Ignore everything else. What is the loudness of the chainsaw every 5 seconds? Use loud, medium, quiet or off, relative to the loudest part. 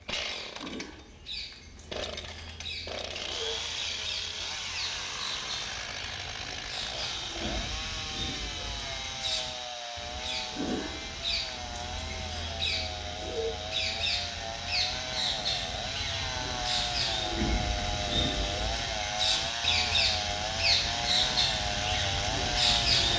medium, medium, medium, loud, loud.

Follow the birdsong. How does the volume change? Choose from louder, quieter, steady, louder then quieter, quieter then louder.
louder.